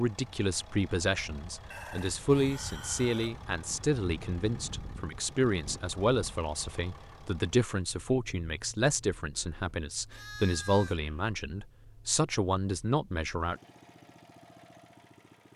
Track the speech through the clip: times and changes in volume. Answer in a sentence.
The speech can be heard from 0.0 to 13.6 s, at a steady volume.